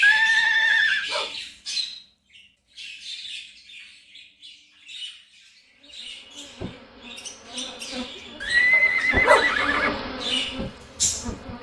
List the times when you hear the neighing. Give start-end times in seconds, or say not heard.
0.0-1.1, 8.4-9.9.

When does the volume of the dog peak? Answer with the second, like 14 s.
9 s.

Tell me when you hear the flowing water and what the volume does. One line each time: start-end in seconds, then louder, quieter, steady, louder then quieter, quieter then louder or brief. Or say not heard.
not heard.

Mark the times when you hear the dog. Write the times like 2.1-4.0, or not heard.
0.6-1.4, 8.7-9.5.